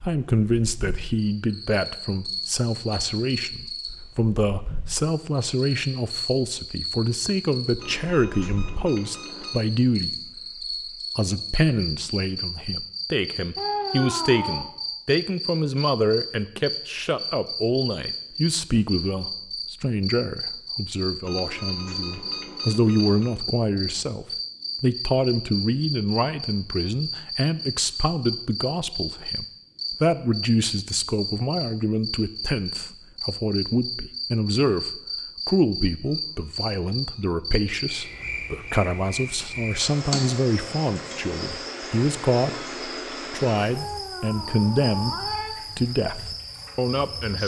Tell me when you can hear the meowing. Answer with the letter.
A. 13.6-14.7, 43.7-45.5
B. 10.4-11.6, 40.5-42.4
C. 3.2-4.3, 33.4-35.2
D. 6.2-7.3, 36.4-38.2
A.